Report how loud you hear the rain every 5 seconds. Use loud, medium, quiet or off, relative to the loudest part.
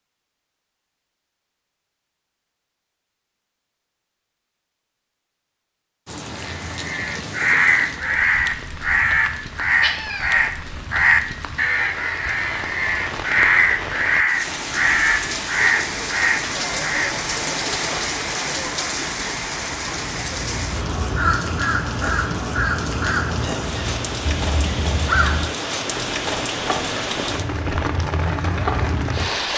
off, medium, medium, loud, loud, loud.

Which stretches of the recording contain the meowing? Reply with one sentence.
The meowing can be heard from 9.8 to 10.4 s.